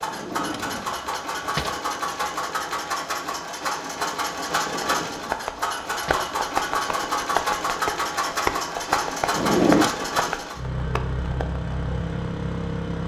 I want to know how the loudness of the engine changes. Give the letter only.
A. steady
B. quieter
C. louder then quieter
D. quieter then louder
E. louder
A.